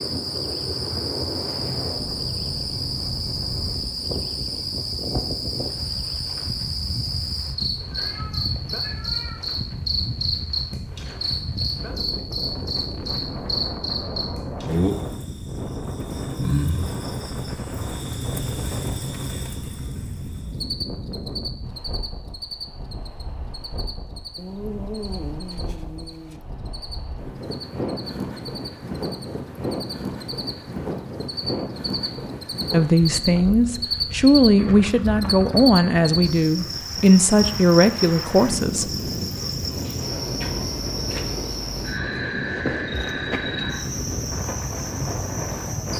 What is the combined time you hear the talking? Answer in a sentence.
The talking can be heard for 6 seconds in total.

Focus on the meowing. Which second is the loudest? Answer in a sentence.
The loudest moment of the meowing is at 25 seconds.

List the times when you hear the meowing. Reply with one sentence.
The meowing can be heard from 7.9 to 9.4 s and from 24.4 to 26.4 s.